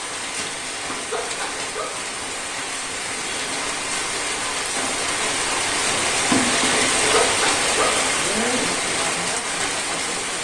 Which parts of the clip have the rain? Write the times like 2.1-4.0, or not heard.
0.0-10.3.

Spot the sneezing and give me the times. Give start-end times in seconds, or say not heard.
1.1-2.0, 7.1-8.1.